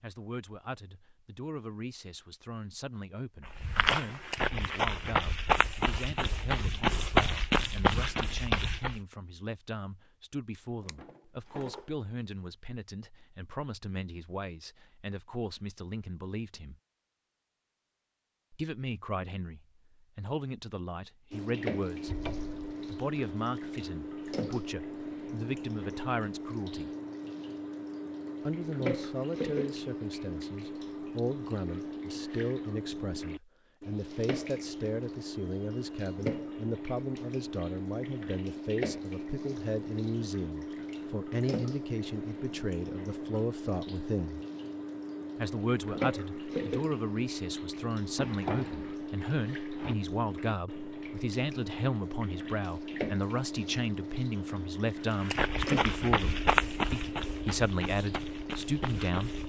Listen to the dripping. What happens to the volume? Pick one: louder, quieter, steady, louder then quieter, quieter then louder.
steady.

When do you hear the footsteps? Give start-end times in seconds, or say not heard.
3.5-9.0, 55.2-59.4.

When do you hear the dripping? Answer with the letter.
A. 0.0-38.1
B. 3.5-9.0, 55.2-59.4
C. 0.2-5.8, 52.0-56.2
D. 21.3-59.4
D.